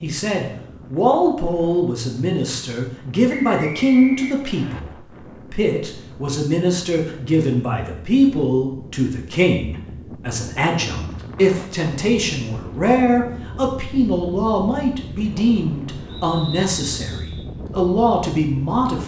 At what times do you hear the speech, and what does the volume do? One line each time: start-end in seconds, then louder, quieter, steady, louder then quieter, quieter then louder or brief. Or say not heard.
0.0-19.0 steady.